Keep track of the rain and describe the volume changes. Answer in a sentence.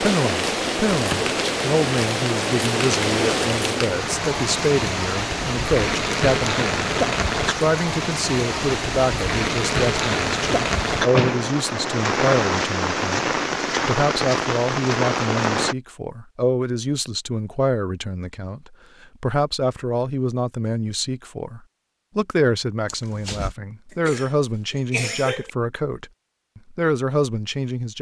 The volume of the rain stays about the same.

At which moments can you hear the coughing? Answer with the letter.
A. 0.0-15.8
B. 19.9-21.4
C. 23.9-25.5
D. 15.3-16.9
C.